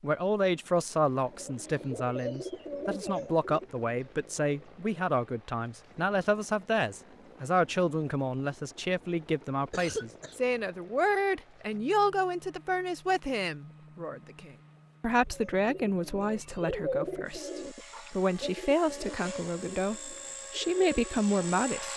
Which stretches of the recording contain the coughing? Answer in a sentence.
The coughing can be heard from 9.7 to 10.3 s.